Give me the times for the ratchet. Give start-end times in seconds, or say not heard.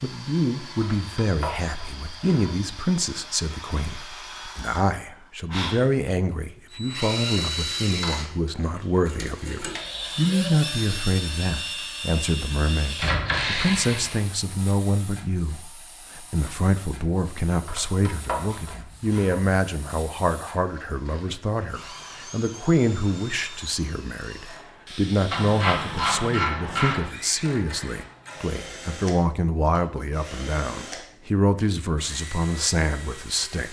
0.8-2.7, 12.9-14.3, 17.6-19.6, 25.3-27.1.